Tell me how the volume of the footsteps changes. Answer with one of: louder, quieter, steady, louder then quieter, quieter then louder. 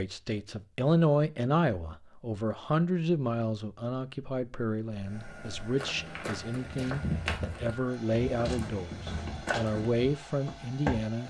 louder then quieter.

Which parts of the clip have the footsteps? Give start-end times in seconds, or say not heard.
5.0-11.2.